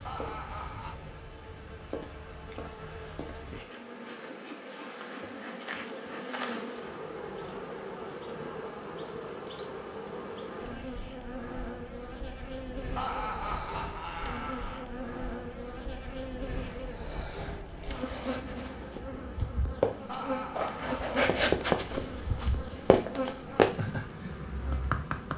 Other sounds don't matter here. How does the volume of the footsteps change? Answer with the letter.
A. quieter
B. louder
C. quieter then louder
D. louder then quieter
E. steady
B.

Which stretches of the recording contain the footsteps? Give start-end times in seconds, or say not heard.
17.8-23.9.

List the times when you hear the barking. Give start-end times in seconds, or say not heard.
not heard.